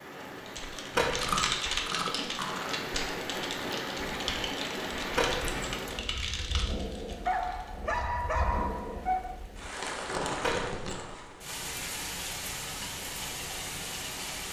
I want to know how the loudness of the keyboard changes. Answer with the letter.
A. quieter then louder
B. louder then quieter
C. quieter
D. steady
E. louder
C.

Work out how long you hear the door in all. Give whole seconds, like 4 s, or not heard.
2 s.